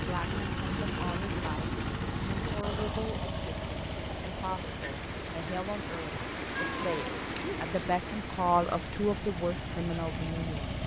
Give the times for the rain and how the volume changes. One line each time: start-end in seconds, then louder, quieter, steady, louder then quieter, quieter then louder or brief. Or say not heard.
3.4-10.8 louder then quieter.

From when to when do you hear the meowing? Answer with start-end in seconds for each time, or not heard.
6.5-7.6.